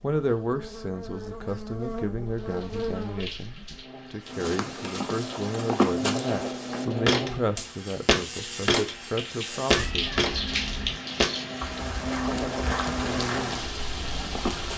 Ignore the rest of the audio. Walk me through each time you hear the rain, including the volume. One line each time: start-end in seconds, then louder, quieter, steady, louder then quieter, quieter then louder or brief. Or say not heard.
2.3-14.7 louder.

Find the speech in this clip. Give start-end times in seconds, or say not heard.
0.0-10.1.